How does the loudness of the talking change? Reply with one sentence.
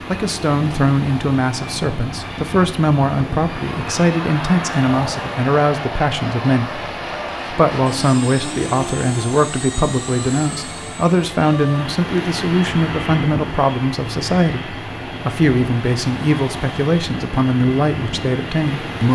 The volume of the talking stays about the same.